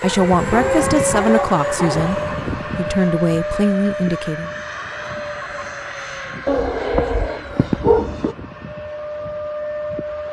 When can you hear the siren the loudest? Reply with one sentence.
The loudest moment of the siren is at 1 second.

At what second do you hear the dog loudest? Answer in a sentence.
The loudest moment of the dog is at 8 seconds.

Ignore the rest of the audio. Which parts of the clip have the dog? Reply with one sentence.
You can hear the dog from 0.5 to 2.2 s and from 6.5 to 8.3 s.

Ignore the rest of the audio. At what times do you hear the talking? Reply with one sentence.
The talking can be heard from 0.0 to 4.5 s.